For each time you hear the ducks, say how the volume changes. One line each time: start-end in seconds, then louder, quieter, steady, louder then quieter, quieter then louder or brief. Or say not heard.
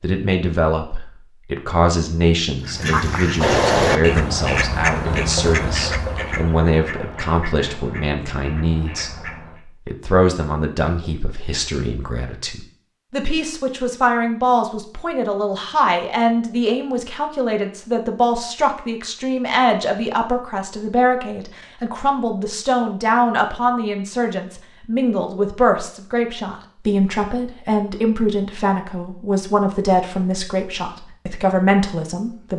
2.6-9.7 quieter.